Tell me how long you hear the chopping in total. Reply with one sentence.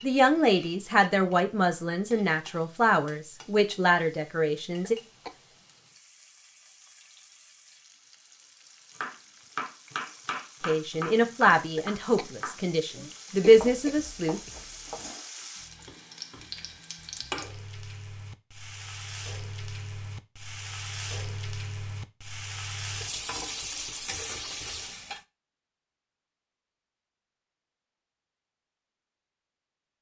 You can hear the chopping for 6 seconds altogether.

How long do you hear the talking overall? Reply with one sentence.
The talking can be heard for 9 seconds in total.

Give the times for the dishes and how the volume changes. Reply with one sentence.
The dishes can't be heard in this clip.